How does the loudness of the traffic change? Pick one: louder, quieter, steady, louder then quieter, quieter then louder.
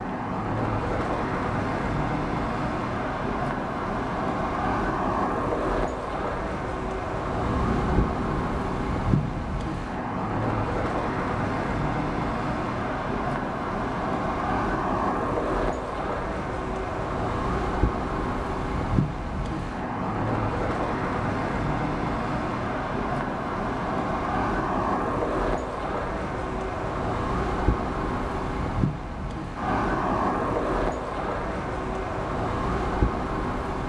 steady.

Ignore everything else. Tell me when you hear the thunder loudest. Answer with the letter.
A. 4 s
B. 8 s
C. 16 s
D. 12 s
B.